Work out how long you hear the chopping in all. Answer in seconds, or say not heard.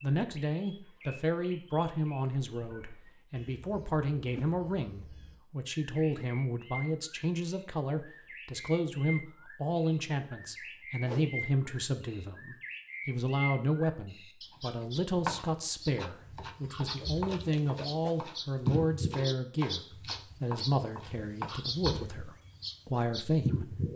7 s.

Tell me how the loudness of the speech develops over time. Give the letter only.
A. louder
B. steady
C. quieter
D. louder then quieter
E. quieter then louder
B.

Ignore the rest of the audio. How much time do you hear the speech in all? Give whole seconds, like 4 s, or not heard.
24 s.